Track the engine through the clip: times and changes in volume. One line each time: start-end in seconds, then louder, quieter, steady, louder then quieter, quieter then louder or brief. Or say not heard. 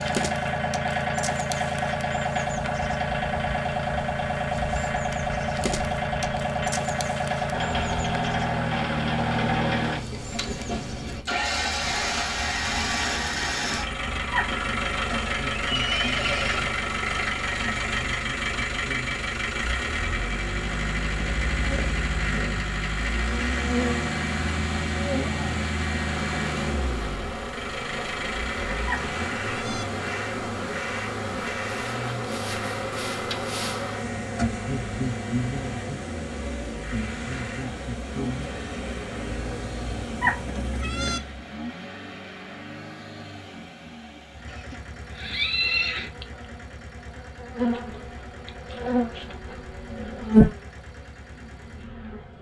0.0-52.3 quieter.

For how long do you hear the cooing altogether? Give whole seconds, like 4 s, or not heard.
not heard.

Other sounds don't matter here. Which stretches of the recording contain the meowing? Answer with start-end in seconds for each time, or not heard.
14.3-15.0, 28.9-29.9, 40.2-41.2.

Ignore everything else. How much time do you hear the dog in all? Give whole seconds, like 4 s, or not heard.
not heard.